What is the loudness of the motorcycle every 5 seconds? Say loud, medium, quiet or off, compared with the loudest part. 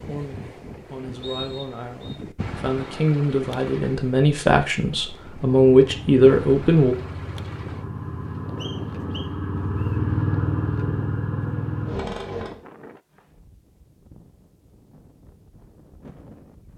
off, medium, loud, off.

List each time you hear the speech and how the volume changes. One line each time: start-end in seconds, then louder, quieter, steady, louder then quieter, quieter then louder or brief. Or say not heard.
0.0-7.0 louder.